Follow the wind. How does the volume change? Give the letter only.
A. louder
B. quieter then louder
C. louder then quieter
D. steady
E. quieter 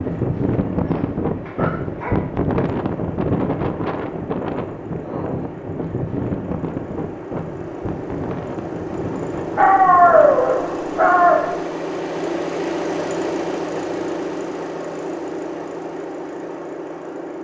E.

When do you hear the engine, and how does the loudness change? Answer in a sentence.
The engine can be heard from 0.0 to 17.3 s, getting louder.